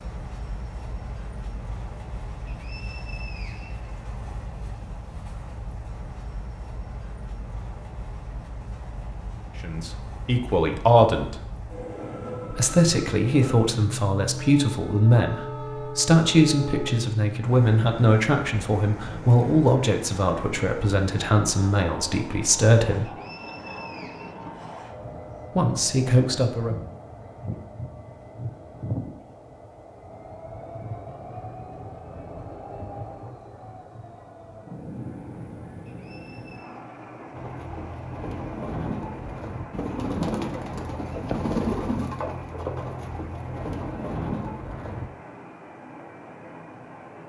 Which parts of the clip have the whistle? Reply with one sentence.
The whistle can be heard from 2.5 to 3.9 s, from 23.0 to 24.5 s and from 35.9 to 36.8 s.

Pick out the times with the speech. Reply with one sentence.
You can hear the speech from 9.6 to 11.3 s, from 12.5 to 23.1 s and from 25.6 to 26.8 s.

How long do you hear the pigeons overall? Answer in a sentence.
You can hear the pigeons for 8 seconds altogether.